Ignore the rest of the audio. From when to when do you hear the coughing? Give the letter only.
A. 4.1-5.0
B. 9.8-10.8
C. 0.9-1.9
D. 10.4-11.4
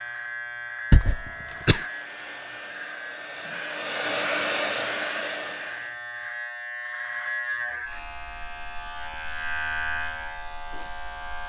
C.